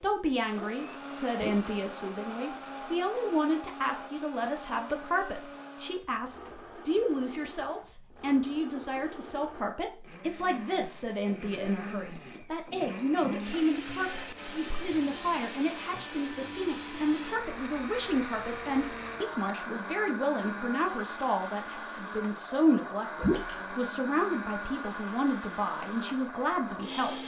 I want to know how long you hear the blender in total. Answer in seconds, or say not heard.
27 s.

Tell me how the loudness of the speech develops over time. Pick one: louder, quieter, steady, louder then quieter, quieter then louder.
steady.